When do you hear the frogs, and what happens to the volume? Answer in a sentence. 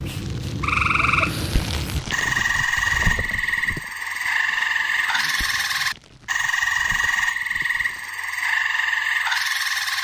You can hear the frogs from 0.0 to 9.9 s, at a steady volume.